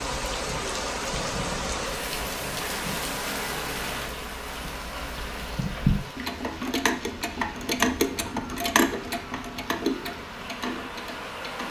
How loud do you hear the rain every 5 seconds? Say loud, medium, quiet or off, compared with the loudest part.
loud, medium, medium.